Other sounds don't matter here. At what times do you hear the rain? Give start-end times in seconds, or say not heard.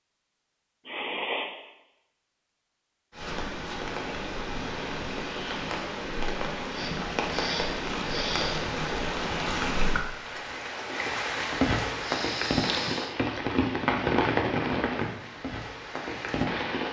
3.1-16.8.